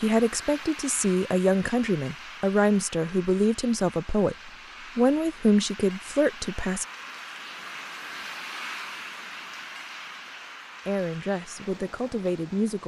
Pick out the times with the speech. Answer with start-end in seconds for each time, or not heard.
0.0-6.8, 10.8-12.8.